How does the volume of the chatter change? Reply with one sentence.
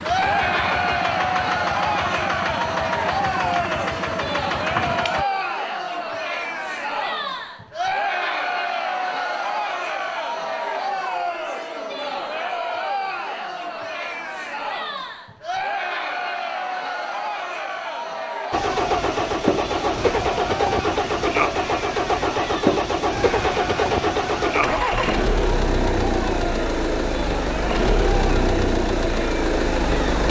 The loudness of the chatter goes down.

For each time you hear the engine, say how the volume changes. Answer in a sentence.
The engine can be heard from 0.0 to 5.2 s, at a steady volume; and from 18.5 to 30.2 s, at a steady volume.